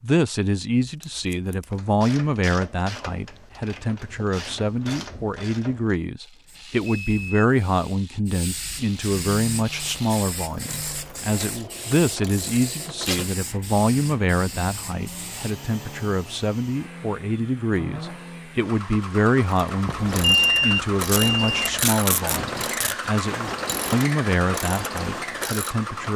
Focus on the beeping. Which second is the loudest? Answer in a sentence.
The loudest moment of the beeping is at 20 seconds.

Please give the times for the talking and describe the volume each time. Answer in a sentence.
You can hear the talking from 0.0 to 26.1 s, at a steady volume.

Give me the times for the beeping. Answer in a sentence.
The beeping can be heard from 6.8 to 7.5 s and from 19.9 to 21.7 s.